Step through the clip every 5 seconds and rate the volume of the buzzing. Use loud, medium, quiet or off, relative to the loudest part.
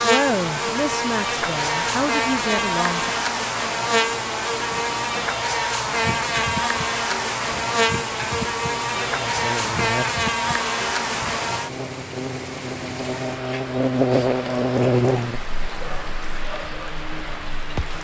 loud, loud, loud, medium.